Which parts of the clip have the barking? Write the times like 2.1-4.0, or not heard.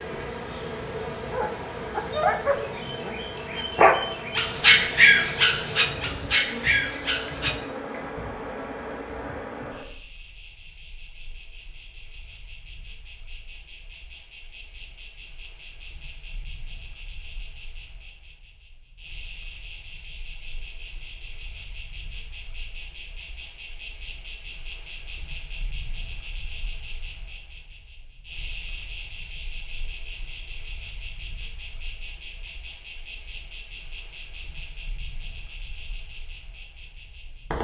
1.3-7.5.